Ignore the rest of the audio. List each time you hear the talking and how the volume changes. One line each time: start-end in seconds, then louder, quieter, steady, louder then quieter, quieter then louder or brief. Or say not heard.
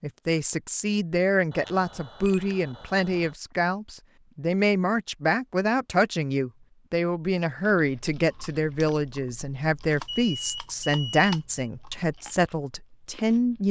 0.0-13.6 steady.